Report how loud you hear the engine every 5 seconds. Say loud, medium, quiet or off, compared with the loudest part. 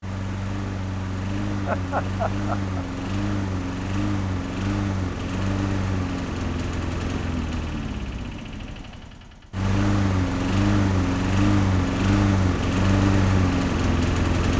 medium, medium, loud.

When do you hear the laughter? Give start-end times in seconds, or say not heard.
1.6-2.9.